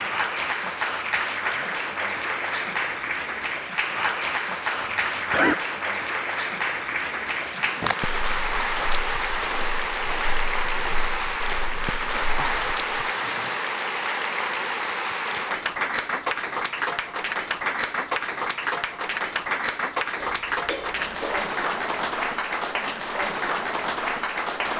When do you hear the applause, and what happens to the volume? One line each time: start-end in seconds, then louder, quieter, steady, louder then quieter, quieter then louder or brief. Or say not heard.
0.0-24.7 steady.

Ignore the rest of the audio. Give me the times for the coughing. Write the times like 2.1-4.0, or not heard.
4.8-5.5, 12.3-13.7, 20.2-21.4.